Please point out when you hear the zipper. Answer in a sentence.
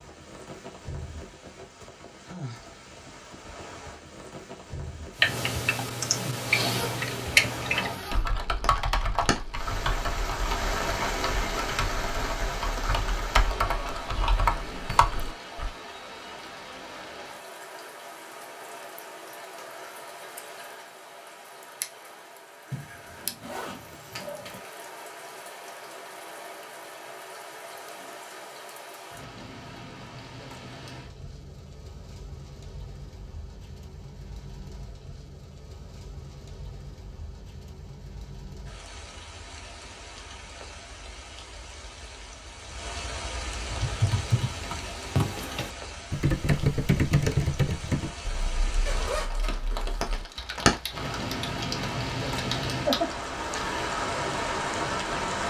You can hear the zipper from 6.5 to 8.2 s, from 22.7 to 24.6 s and from 48.9 to 50.2 s.